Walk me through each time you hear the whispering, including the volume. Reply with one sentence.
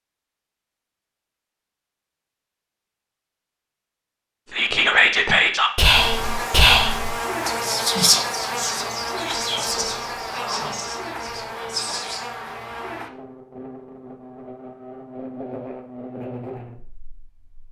The whispering can be heard from 4.5 to 12.3 s, getting quieter.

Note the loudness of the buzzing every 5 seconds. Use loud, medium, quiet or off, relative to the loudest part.
off, loud, medium, medium.